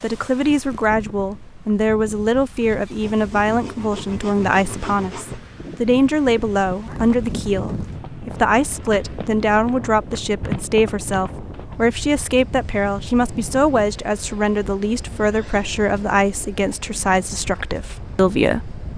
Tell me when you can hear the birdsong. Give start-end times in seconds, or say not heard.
not heard.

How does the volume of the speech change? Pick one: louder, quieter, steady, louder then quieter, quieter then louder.
steady.